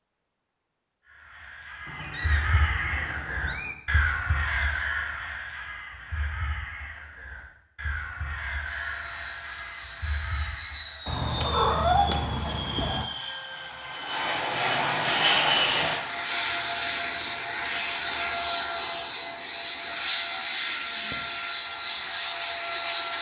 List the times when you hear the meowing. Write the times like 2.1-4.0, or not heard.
1.9-3.8, 11.1-13.1, 19.9-21.2.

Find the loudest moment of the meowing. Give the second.
12 s.